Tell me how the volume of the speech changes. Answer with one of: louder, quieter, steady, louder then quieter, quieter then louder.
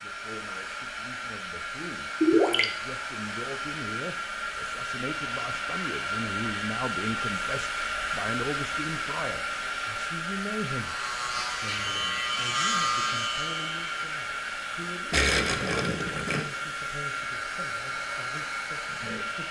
louder then quieter.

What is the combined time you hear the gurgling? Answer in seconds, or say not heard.
2 s.